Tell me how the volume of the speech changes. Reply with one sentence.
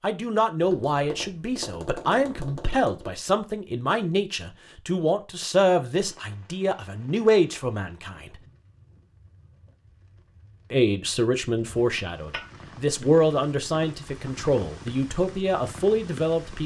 The loudness of the speech stays about the same.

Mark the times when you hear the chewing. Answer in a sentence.
You can't hear the chewing here.